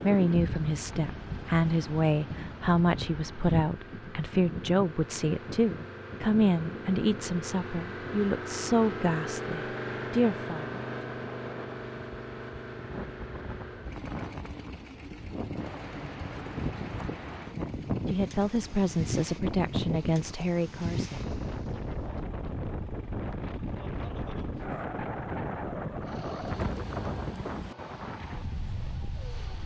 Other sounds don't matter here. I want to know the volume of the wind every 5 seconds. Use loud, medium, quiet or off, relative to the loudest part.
loud, medium, medium, loud, loud, loud.